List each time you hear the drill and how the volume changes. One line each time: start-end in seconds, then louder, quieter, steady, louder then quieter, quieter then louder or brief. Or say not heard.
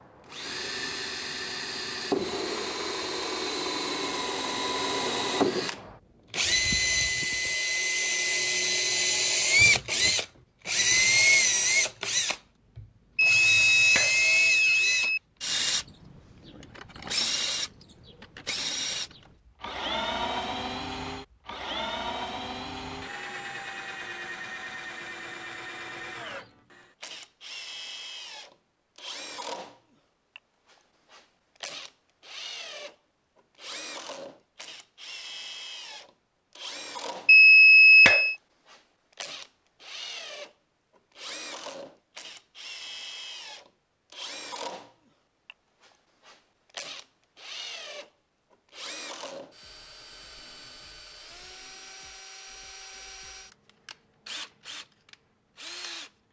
0.0-56.1 quieter.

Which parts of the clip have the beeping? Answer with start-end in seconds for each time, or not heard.
13.2-15.2, 37.2-38.4.